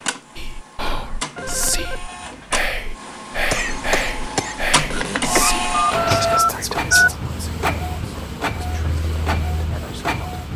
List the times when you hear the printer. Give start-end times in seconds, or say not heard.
0.0-10.5.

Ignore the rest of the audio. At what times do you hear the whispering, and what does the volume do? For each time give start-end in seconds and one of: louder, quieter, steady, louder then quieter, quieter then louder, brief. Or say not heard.
0.3-10.4 quieter.